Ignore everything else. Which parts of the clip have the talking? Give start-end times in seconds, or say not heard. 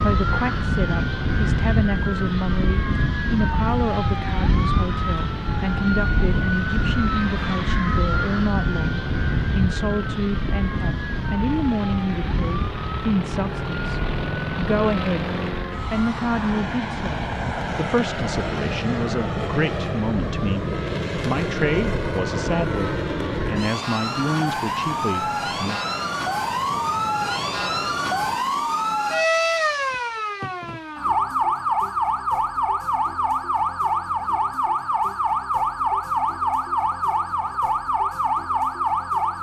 0.0-15.3, 15.9-25.8.